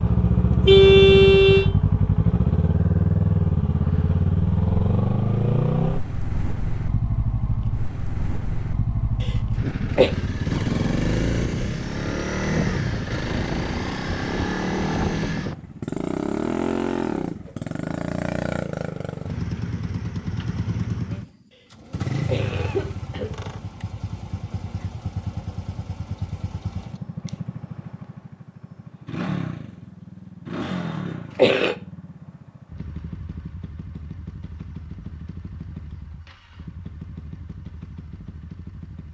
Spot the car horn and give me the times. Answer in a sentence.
You can hear the car horn from 0.7 to 1.7 s.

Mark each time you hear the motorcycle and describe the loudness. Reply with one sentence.
You can hear the motorcycle from 0.0 to 39.0 s, getting quieter.